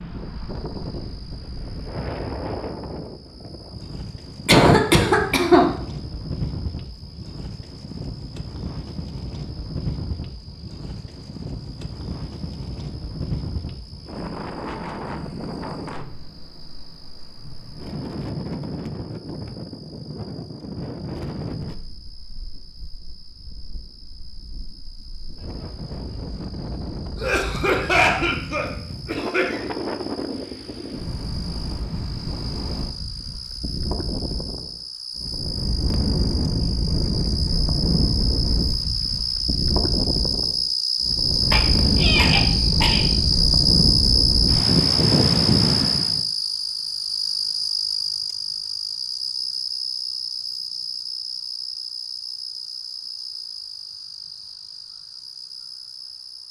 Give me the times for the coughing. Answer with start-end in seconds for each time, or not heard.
4.5-5.7, 27.1-29.7, 41.5-43.0.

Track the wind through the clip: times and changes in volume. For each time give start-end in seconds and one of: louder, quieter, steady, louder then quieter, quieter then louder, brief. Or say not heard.
0.0-46.2 louder.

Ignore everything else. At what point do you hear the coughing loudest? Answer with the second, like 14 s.
5 s.